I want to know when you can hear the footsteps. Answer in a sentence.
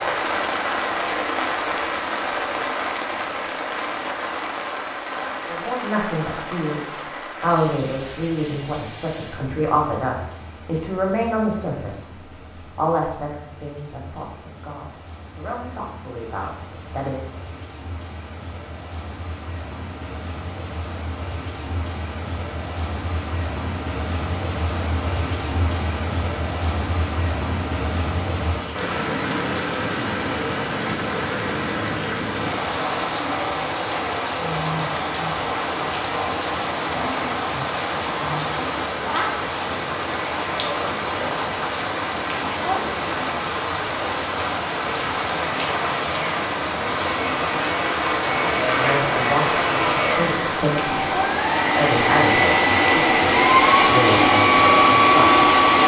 The footsteps can't be heard in this clip.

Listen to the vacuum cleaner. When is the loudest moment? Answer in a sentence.
The loudest moment of the vacuum cleaner is at 55 seconds.